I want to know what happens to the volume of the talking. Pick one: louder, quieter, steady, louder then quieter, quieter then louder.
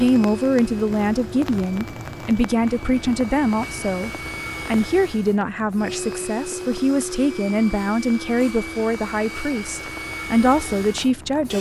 steady.